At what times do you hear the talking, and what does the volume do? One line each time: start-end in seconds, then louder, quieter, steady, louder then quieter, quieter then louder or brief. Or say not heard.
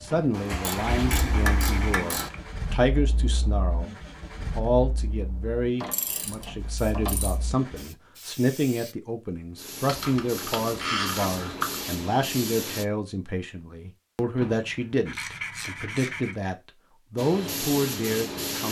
0.0-18.6 steady.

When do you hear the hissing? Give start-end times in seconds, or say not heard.
6.6-12.8, 17.1-18.6.